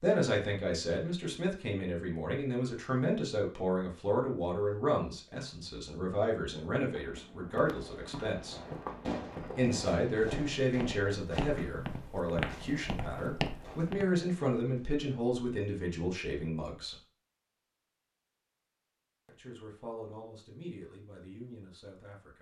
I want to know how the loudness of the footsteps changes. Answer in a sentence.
The volume of the footsteps goes up.